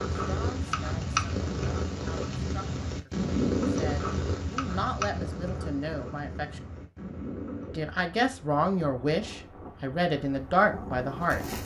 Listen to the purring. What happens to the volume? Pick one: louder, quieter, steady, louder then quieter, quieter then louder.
quieter.